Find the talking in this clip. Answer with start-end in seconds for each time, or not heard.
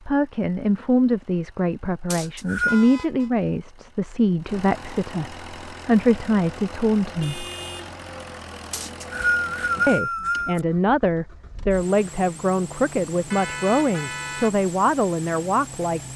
0.1-7.5, 9.8-16.1.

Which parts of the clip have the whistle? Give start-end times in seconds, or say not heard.
2.1-2.9, 8.7-10.6.